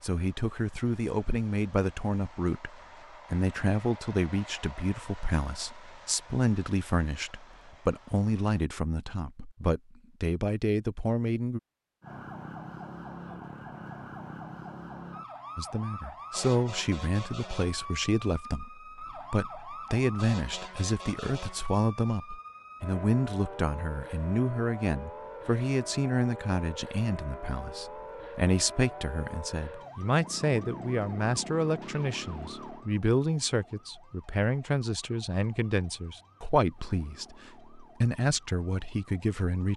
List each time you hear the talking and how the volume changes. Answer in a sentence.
The talking can be heard from 0.0 to 11.6 s, at a steady volume; and from 15.6 to 39.7 s, at a steady volume.